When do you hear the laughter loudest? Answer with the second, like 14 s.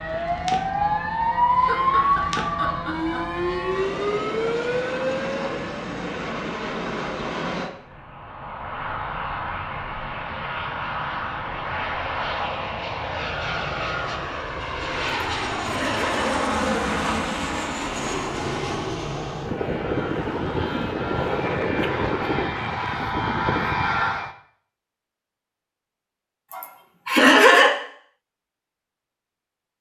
27 s.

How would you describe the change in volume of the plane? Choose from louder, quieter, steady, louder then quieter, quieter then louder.
louder.